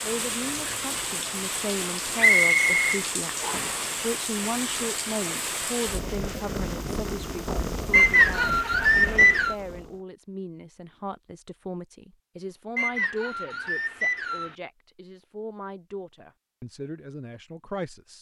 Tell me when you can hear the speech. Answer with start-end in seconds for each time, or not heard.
0.0-18.1.